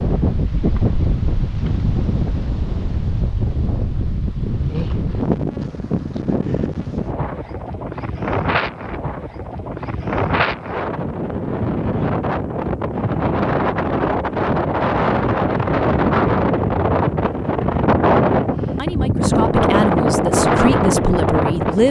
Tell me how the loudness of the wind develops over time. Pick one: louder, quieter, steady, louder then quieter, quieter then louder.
louder.